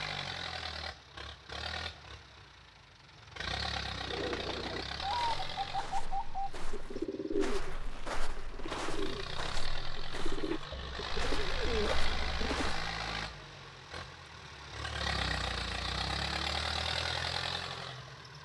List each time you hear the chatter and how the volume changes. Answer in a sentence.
The chatter can't be heard in this clip.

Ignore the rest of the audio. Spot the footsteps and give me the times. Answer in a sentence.
You can hear the footsteps from 5.0 to 12.9 s.